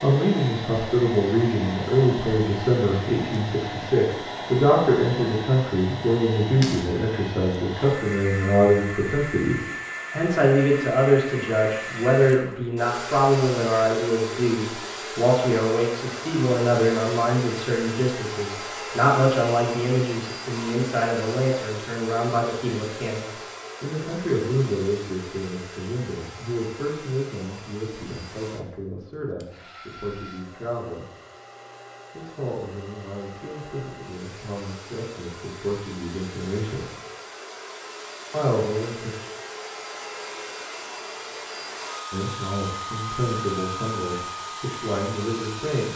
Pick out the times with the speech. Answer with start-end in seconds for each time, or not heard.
0.0-31.1, 32.1-36.9, 38.3-39.1, 42.1-45.9.